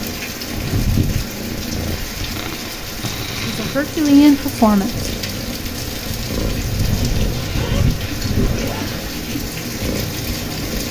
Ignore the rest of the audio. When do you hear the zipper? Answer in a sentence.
The zipper can be heard from 7.2 to 9.1 s.